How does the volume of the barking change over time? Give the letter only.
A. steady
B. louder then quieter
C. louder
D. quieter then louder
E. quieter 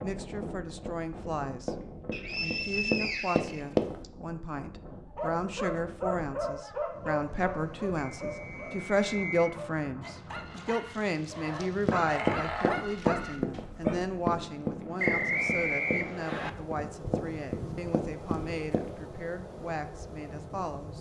D.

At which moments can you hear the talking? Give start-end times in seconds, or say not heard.
0.0-1.8, 2.4-20.9.